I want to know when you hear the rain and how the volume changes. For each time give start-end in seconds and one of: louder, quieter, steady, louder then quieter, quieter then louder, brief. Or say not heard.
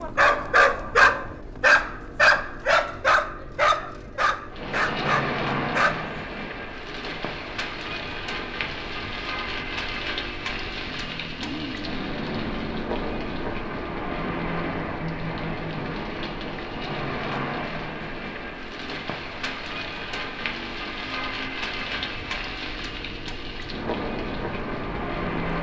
4.5-25.5 steady.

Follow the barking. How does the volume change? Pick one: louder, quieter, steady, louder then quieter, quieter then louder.
quieter.